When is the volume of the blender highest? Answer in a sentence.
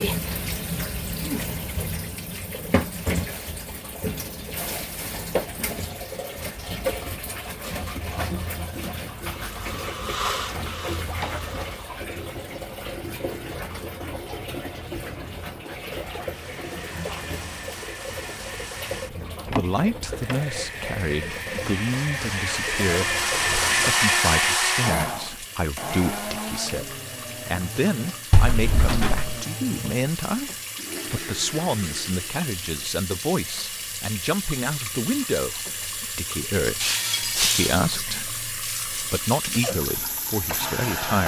The loudest moment of the blender is at 24 seconds.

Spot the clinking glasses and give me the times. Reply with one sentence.
You can hear the clinking glasses from 36.8 to 38.0 s.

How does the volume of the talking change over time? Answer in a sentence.
The loudness of the talking stays about the same.